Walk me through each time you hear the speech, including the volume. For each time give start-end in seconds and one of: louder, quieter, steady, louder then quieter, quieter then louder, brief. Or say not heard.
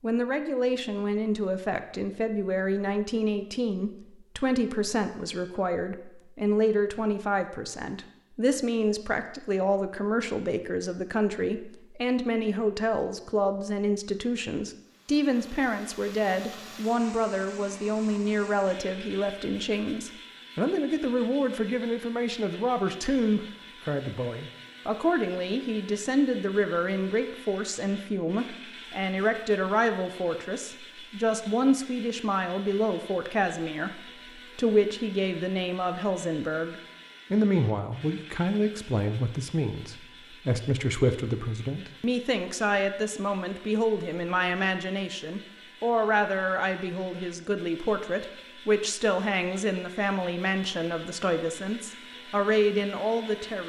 0.0-53.6 steady.